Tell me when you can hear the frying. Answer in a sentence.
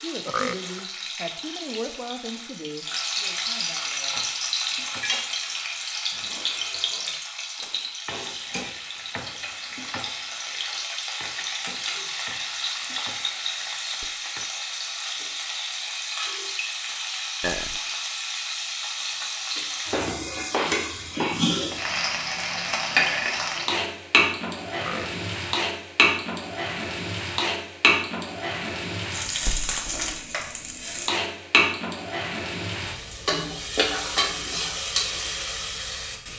You can hear the frying from 0.0 to 36.3 s.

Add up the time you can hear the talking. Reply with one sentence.
You can hear the talking for 4 seconds altogether.